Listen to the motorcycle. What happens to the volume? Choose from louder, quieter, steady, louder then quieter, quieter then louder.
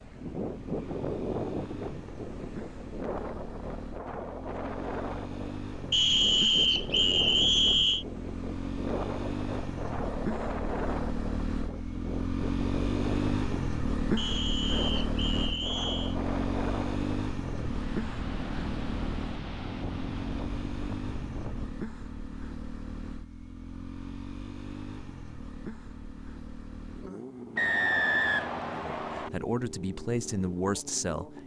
louder then quieter.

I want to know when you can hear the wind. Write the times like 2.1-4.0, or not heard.
0.0-21.7.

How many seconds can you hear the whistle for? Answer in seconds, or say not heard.
6 s.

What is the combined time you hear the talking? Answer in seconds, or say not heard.
3 s.